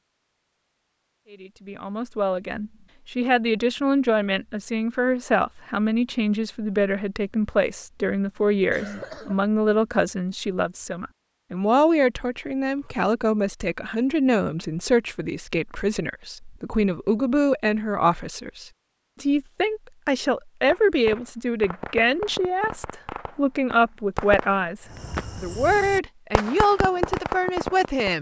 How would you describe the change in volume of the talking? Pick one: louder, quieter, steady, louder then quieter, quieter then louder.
steady.